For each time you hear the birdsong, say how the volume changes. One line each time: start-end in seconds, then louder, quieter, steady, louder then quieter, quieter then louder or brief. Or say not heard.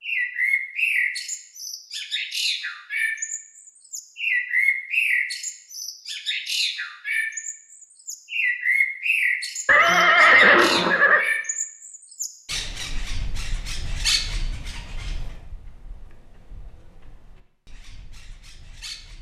0.0-19.1 quieter.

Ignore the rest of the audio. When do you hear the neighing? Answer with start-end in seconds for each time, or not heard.
9.7-11.2.